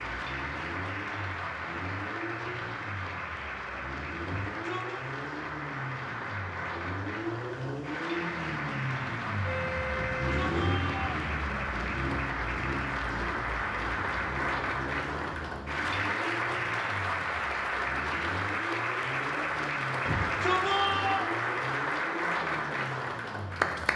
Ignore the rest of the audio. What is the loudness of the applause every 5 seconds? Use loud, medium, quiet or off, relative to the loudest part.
medium, medium, loud, loud, loud.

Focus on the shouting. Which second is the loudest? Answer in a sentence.
The volume of the shouting peaks at 21 seconds.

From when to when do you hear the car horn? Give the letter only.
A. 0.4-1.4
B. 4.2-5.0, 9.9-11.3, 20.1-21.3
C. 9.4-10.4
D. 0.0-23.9
C.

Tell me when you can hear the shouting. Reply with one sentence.
You can hear the shouting from 4.2 to 5.0 s, from 9.9 to 11.3 s and from 20.1 to 21.3 s.